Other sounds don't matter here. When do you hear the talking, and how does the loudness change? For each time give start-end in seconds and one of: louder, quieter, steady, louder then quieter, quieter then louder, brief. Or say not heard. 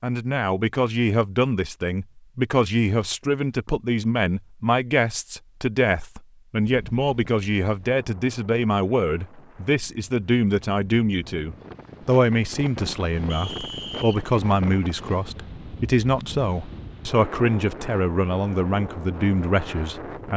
0.0-20.3 steady.